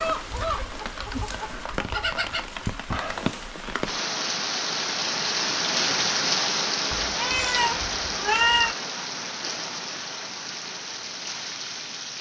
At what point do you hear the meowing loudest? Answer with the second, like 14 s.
8 s.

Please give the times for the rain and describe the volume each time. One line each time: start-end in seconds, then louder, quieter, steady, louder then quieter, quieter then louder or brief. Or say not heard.
0.0-12.1 louder then quieter.